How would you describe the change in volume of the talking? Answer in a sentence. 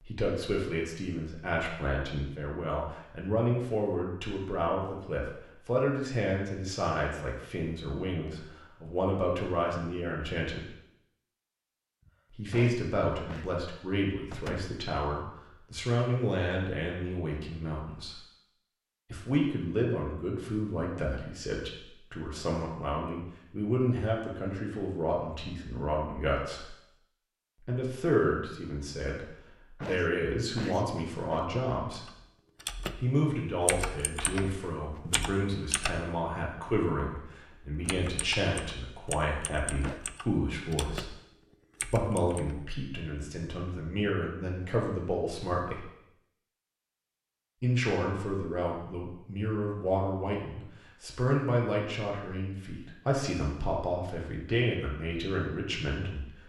The loudness of the talking stays about the same.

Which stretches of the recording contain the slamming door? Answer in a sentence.
The slamming door can be heard from 14.3 to 14.8 s.